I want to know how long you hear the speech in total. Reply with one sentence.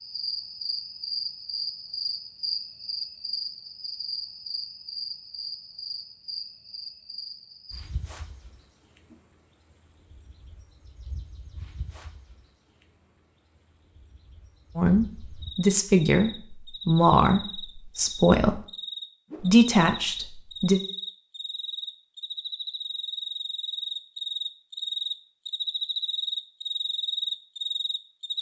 You can hear the speech for 5 seconds altogether.